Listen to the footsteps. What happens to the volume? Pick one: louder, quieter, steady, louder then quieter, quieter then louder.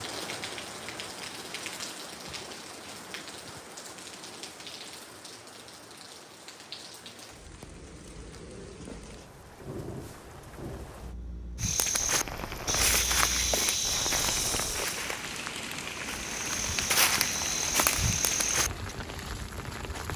quieter then louder.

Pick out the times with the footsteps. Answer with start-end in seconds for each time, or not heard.
11.6-18.9.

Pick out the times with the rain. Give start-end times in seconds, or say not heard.
0.0-20.1.